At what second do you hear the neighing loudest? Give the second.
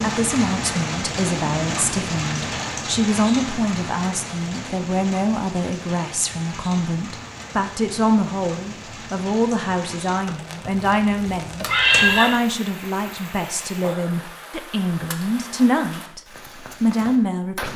12 s.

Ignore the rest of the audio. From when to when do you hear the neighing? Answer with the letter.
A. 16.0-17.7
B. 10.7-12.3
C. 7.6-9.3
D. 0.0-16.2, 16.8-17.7
B.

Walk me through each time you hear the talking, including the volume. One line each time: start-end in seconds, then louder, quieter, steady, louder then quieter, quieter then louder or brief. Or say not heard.
0.0-16.2 steady
16.8-17.7 brief.